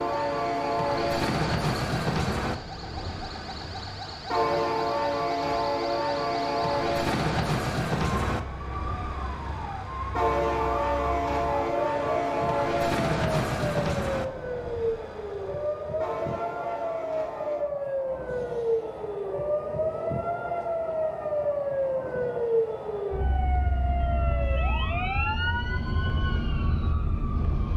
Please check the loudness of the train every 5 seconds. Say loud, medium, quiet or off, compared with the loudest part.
loud, loud, loud, quiet, quiet, quiet.